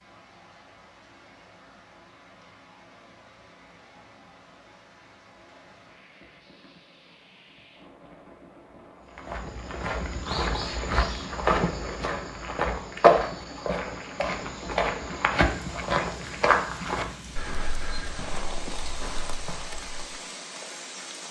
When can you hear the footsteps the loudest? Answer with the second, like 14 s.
13 s.